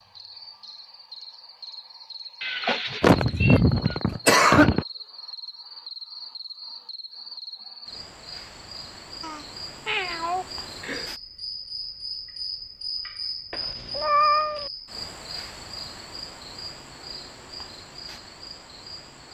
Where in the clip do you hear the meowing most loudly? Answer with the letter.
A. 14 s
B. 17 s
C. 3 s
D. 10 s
A.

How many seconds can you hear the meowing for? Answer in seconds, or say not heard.
5 s.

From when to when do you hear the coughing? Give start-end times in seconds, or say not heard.
3.0-4.8.